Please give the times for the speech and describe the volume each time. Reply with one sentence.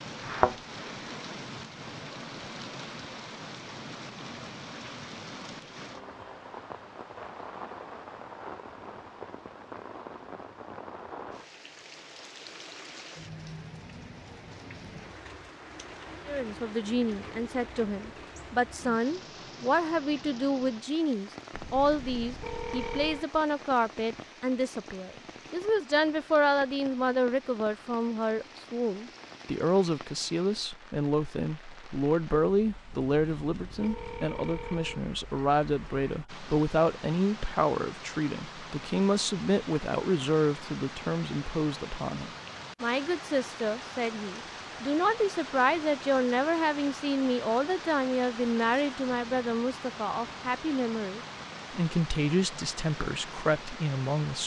The speech can be heard from 16.2 to 54.4 s, at a steady volume.